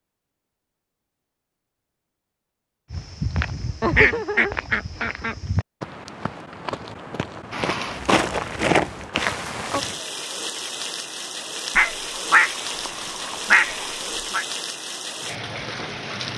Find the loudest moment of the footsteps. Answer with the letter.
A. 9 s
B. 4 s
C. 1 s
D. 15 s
A.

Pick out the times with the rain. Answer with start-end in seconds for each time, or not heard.
7.5-16.3.